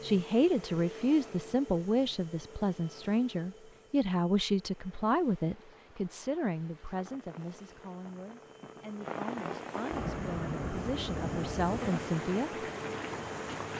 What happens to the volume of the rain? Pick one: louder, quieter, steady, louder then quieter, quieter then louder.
louder.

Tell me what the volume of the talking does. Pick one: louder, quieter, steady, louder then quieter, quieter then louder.
quieter then louder.